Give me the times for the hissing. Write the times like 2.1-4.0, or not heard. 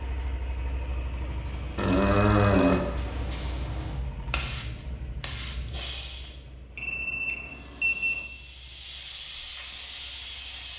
1.4-6.4, 7.4-10.7.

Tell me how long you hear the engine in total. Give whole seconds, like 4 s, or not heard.
11 s.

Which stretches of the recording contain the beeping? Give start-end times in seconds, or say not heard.
1.8-2.8, 6.8-8.2.